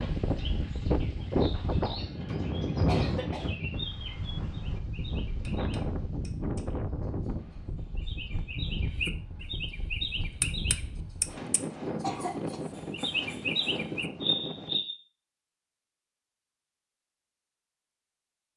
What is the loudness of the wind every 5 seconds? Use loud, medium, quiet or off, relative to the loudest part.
loud, medium, medium, off.